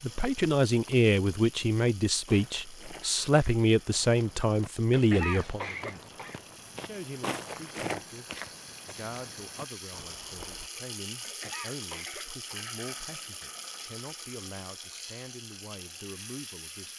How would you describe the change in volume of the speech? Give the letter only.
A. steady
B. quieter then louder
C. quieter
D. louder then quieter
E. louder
C.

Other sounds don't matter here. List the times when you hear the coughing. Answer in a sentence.
You can hear the coughing from 4.9 to 6.4 s and from 11.2 to 12.7 s.